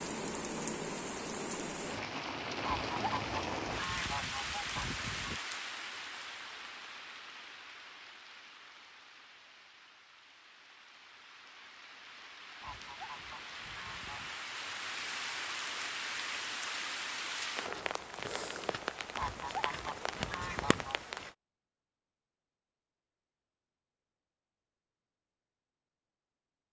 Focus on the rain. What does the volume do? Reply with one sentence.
The loudness of the rain goes down, then up.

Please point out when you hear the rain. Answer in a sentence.
You can hear the rain from 0.0 to 21.4 s.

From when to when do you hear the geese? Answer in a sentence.
The geese can be heard from 2.6 to 5.4 s, from 12.6 to 14.4 s and from 19.1 to 21.1 s.